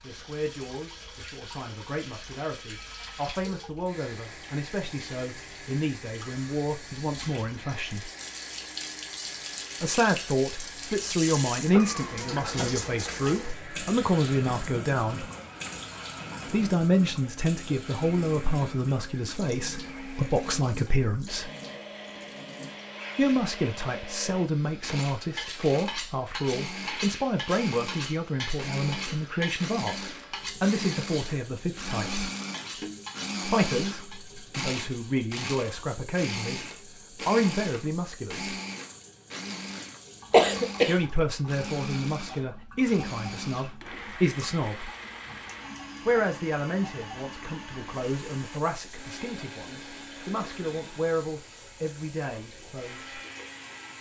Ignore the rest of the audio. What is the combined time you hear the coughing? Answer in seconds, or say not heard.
2 s.